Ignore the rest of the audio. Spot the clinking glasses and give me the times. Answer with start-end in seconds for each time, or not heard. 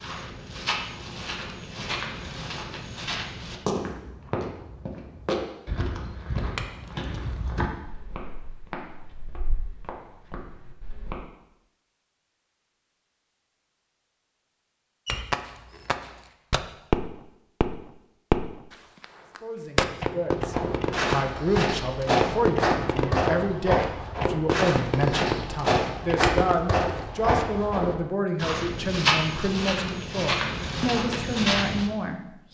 6.5-7.5, 15.1-16.3, 26.2-27.1.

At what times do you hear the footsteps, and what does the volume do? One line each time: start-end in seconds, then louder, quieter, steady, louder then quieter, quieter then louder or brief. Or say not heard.
0.0-11.2 quieter
20.4-31.9 steady.